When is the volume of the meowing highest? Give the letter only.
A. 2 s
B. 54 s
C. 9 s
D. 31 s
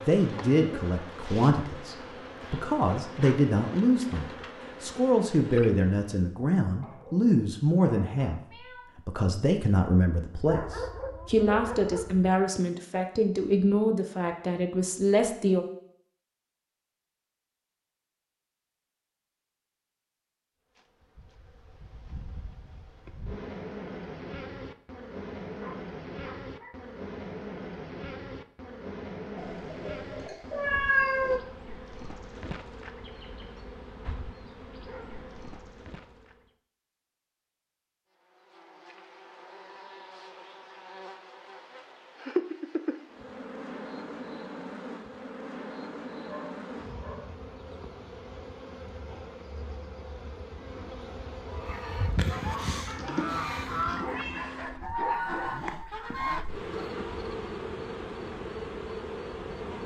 D.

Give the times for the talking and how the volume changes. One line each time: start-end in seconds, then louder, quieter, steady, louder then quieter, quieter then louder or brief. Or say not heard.
0.0-15.7 steady.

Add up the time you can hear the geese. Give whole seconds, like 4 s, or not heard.
6 s.